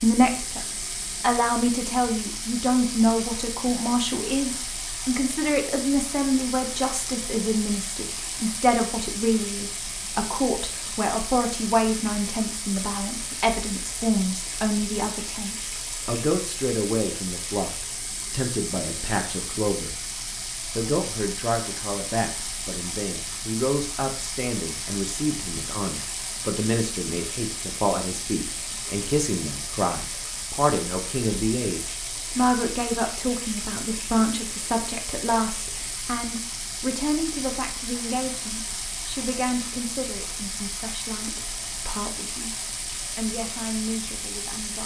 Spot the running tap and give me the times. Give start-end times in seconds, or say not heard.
0.0-44.8.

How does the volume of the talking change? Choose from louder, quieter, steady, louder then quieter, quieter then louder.
quieter.